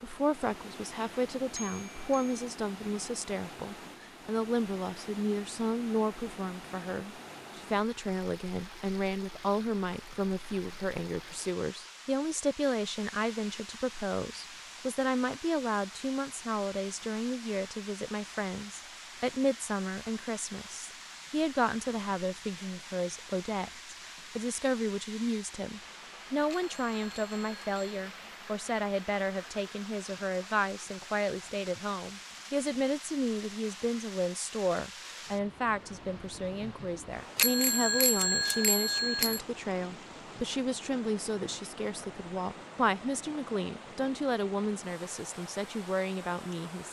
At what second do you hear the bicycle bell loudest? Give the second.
38 s.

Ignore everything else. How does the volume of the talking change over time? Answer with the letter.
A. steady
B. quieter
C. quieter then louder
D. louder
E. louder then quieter
A.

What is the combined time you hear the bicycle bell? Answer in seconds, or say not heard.
4 s.